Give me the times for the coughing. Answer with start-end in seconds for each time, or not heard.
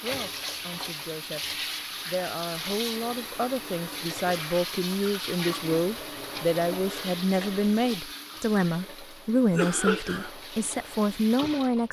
9.3-10.3.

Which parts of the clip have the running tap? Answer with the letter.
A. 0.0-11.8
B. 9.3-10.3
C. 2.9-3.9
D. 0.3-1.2
A.